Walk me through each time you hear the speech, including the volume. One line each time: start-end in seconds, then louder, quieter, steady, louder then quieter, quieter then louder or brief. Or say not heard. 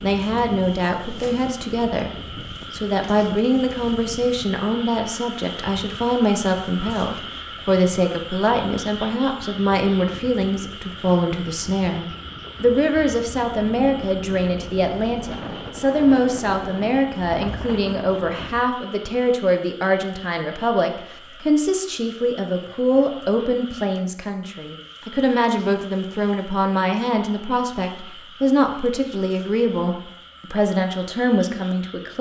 0.0-2.1 brief
2.7-32.1 steady.